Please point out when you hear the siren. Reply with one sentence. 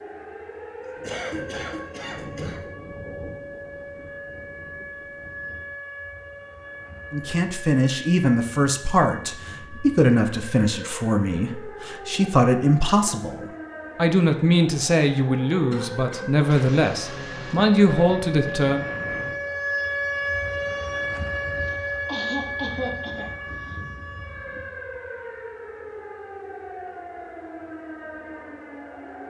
You can hear the siren from 0.0 to 29.2 s.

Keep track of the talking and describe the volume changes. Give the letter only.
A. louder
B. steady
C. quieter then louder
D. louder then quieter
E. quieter
B.